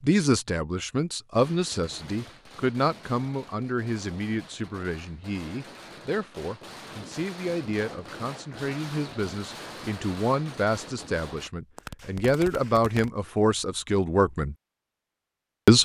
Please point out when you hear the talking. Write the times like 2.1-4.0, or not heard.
0.0-14.6.